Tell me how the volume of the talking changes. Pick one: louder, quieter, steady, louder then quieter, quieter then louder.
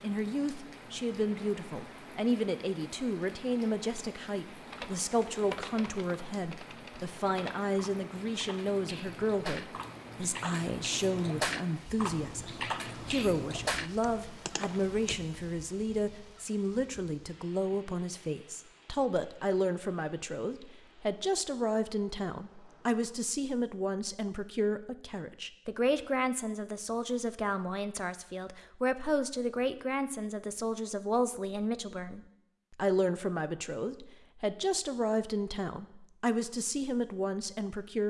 steady.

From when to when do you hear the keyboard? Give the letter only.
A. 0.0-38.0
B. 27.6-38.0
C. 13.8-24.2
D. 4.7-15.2
D.